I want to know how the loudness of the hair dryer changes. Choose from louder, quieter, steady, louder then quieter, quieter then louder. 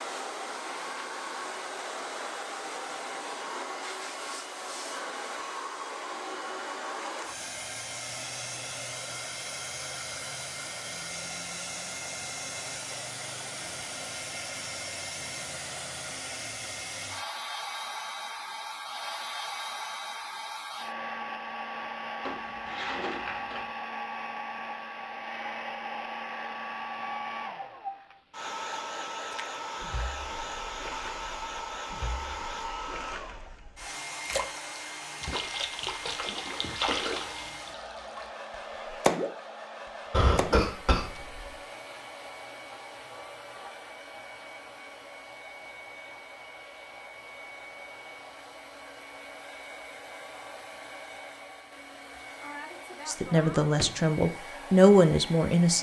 quieter.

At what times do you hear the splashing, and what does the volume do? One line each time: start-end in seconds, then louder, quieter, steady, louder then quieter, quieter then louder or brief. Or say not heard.
29.2-41.3 louder.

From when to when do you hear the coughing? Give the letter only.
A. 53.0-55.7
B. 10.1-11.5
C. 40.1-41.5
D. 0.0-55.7
C.